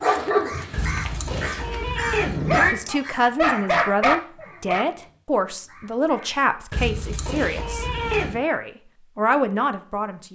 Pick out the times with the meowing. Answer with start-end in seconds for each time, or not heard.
0.7-2.8, 6.7-8.4.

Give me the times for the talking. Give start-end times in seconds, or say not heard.
2.7-10.2.